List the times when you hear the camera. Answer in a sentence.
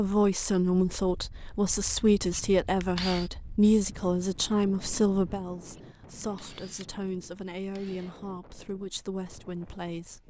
You can hear the camera from 2.3 to 3.3 s and from 5.7 to 8.2 s.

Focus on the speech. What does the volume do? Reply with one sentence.
The volume of the speech goes down.